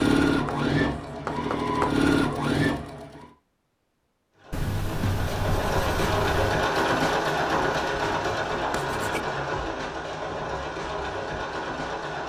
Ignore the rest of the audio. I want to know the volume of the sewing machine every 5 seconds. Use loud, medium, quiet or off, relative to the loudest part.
loud, loud, medium.